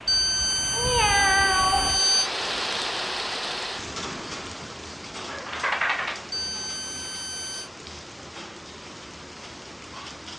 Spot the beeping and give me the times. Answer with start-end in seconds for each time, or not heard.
0.1-2.3, 6.3-7.7.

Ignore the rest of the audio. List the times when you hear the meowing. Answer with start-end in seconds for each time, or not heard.
0.7-2.2, 5.3-6.3.